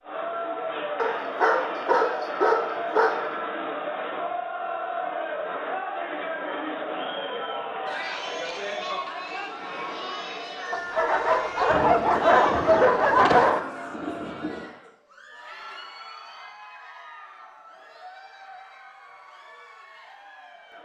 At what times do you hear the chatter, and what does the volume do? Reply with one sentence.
The chatter can be heard from 0.0 to 20.8 s, getting quieter.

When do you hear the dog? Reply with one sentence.
The dog can be heard from 0.9 to 3.2 s and from 10.7 to 13.6 s.